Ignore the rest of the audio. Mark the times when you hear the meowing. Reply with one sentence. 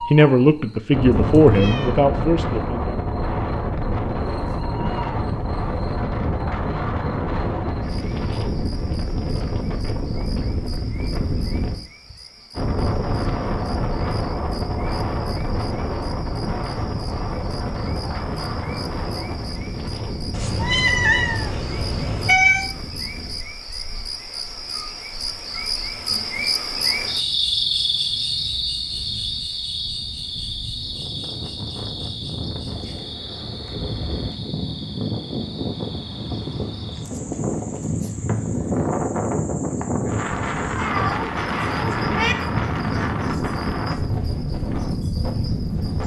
The meowing can be heard from 1.1 to 1.9 s, from 20.3 to 22.7 s and from 40.8 to 42.4 s.